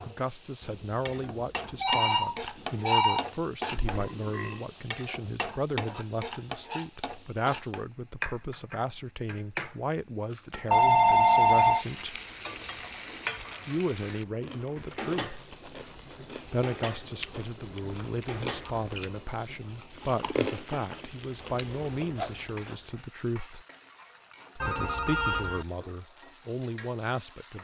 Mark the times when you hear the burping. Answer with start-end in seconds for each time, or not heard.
3.6-4.7.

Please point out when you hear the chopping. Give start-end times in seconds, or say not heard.
not heard.